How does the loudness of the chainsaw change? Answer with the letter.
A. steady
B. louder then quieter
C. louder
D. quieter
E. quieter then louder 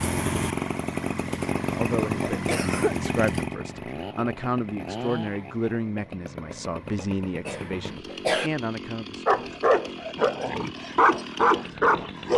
D.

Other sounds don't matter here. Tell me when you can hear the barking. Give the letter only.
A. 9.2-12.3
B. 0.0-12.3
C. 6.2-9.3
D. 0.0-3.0
A.